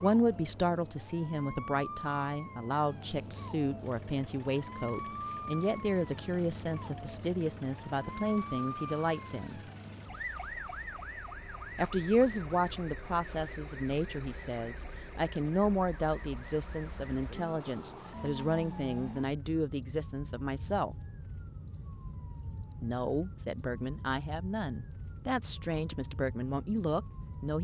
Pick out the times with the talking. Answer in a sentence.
You can hear the talking from 0.0 to 9.6 s, from 11.8 to 20.9 s and from 22.8 to 27.6 s.